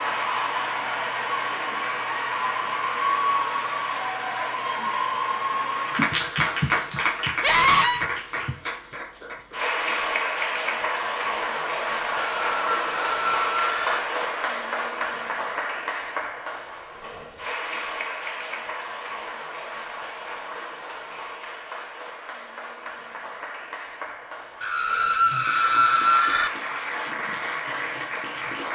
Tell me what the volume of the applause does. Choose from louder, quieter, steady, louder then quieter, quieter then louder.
quieter.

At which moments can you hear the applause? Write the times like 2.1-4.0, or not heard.
0.0-28.7.